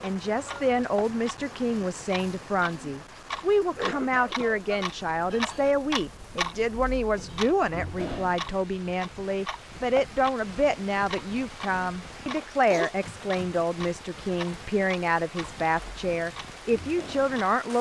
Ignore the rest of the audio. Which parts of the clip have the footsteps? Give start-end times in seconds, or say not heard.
not heard.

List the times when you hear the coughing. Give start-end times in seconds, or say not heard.
3.8-4.6, 12.2-12.9.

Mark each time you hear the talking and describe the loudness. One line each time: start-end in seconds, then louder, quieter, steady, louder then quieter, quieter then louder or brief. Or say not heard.
0.0-17.7 steady.